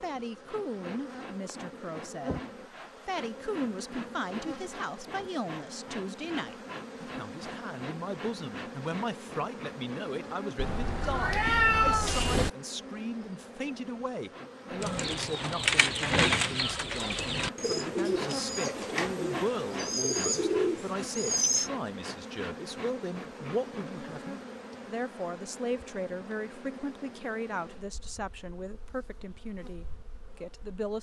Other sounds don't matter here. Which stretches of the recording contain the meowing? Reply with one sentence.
You can hear the meowing from 10.6 to 12.5 s.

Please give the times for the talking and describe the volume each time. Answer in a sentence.
You can hear the talking from 0.0 to 30.9 s, at a steady volume.